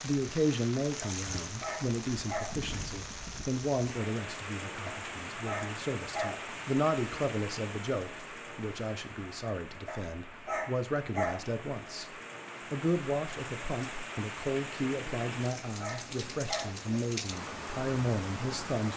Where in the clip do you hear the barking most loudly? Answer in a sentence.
The volume of the barking peaks at 11 seconds.